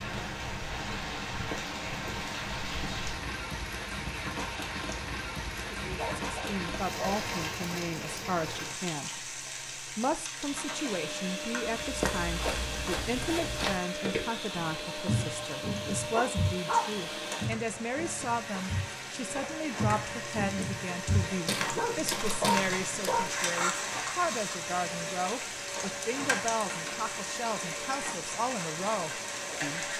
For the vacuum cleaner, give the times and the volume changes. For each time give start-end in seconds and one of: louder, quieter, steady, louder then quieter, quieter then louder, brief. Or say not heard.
10.3-29.9 steady.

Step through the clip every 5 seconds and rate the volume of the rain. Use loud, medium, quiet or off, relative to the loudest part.
loud, loud, medium, medium, loud, loud.